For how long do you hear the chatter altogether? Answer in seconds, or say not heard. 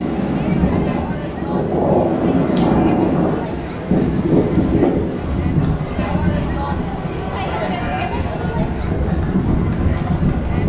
10 s.